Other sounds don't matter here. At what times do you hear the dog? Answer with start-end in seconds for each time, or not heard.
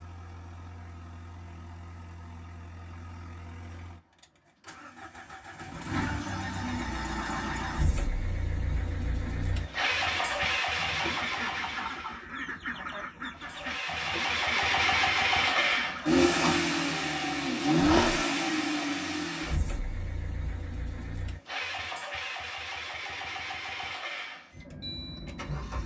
17.8-18.2.